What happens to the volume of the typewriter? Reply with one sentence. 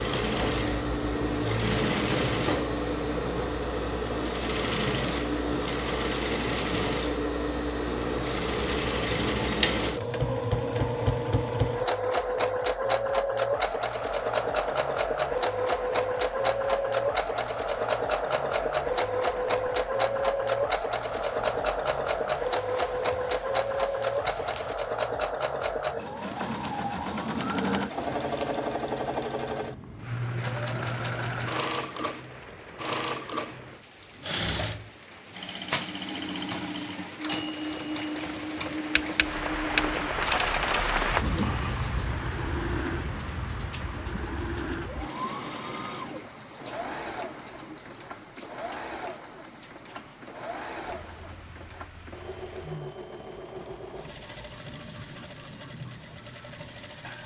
The loudness of the typewriter goes down, then up.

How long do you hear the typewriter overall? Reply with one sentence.
You can hear the typewriter for 6 seconds altogether.